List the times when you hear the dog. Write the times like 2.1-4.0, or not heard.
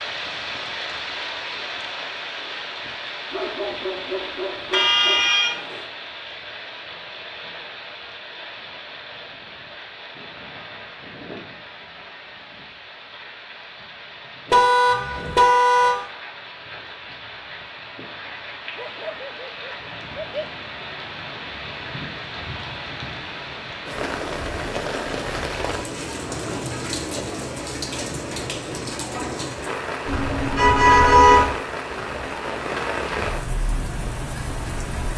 3.3-5.3, 18.8-20.5.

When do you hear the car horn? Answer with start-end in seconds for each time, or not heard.
4.7-5.8, 14.5-15.9, 30.1-31.5.